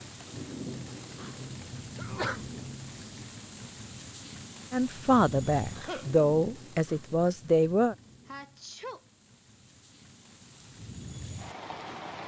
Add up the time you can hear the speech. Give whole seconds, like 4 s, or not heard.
3 s.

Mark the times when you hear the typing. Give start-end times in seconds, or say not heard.
not heard.